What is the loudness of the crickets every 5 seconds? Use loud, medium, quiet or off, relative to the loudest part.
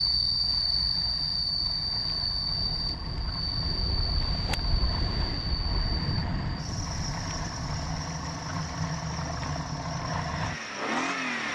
loud, medium, quiet.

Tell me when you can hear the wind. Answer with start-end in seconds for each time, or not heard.
0.0-8.0.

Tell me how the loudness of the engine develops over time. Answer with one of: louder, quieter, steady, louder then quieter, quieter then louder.
louder.